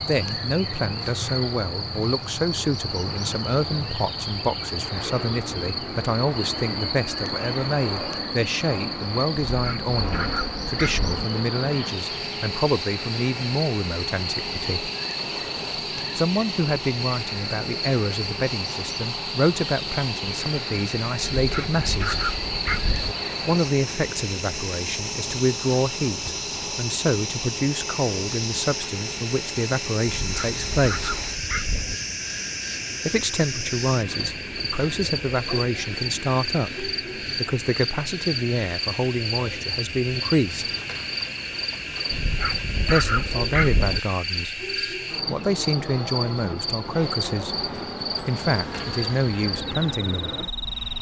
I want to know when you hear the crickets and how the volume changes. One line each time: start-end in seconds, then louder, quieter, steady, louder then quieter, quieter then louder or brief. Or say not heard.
0.0-50.9 steady.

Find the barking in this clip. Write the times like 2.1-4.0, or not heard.
9.5-11.2, 21.4-23.1, 30.1-31.9, 42.1-44.0.